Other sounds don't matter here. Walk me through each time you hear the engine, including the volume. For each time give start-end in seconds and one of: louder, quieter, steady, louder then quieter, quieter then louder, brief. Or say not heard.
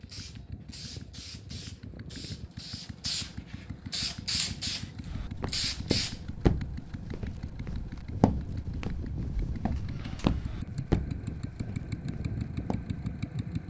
0.0-13.6 louder.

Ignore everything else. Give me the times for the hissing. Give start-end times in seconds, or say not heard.
0.0-6.3.